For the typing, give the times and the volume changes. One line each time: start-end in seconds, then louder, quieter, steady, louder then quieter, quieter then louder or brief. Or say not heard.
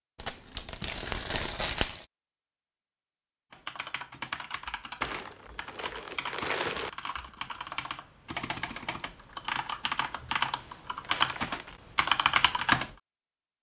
3.5-12.9 louder.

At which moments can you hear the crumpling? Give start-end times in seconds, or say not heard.
0.1-2.0, 5.0-6.9, 11.0-11.8.